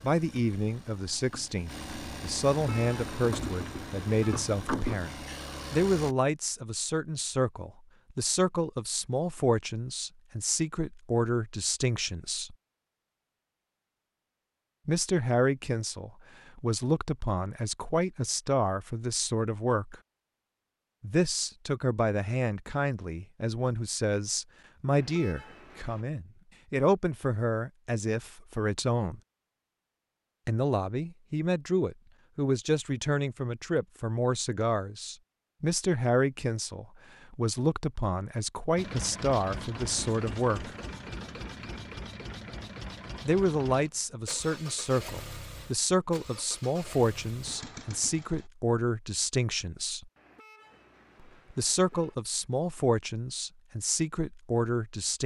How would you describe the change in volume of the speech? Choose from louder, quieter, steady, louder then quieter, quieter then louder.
steady.